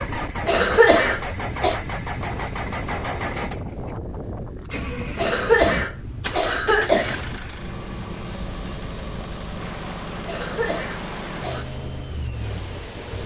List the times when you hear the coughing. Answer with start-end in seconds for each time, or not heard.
0.5-1.8, 5.2-7.2, 10.2-11.7.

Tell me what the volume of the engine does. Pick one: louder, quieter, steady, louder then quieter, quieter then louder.
steady.